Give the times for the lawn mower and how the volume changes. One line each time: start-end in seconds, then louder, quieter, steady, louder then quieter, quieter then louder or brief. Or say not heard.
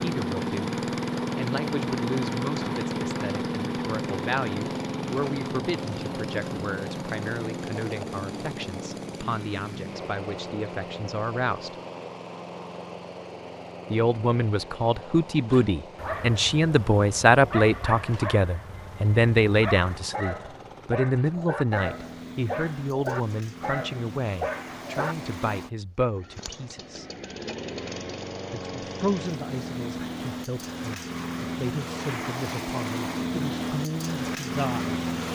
0.0-35.3 quieter then louder.